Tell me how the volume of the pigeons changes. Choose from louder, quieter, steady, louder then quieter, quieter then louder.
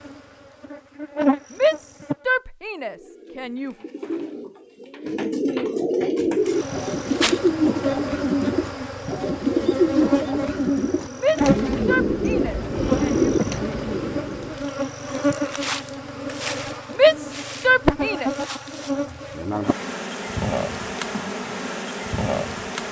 louder.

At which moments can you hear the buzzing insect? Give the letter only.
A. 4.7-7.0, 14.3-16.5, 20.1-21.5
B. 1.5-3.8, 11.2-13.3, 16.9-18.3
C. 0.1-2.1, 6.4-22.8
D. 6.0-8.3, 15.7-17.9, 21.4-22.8
C.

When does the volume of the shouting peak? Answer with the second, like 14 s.
17 s.